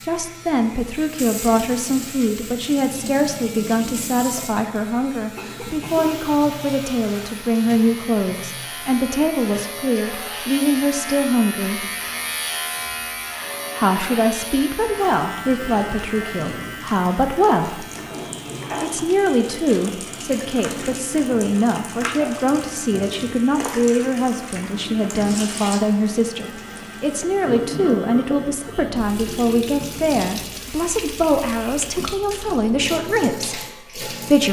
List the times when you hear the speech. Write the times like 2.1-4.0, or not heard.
0.0-11.9, 13.8-17.9, 18.8-34.4.